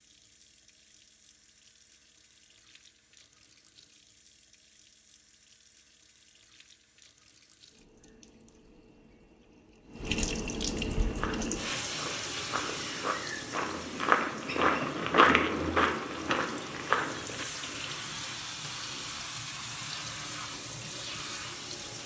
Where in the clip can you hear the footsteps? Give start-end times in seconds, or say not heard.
11.0-17.6.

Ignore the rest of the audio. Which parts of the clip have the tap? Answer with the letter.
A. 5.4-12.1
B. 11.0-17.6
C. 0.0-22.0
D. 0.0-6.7
C.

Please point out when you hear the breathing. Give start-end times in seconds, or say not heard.
not heard.